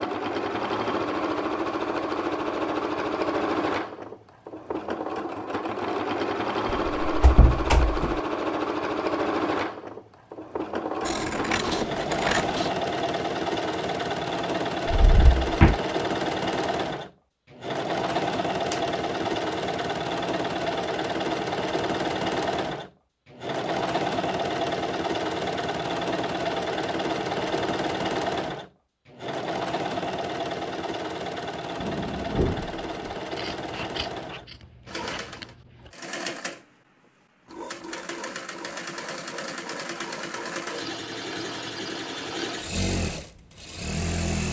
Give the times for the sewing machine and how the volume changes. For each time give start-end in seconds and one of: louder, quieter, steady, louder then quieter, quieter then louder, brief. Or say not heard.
0.0-44.4 quieter.